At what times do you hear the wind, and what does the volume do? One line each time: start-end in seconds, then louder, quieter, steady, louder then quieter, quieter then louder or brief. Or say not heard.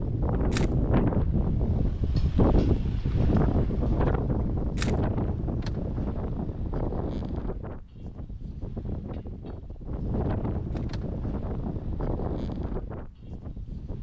0.0-13.9 quieter.